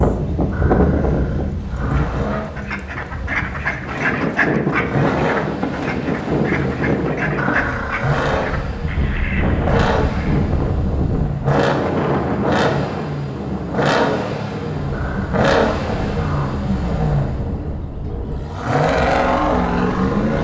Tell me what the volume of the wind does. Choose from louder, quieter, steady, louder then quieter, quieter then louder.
quieter.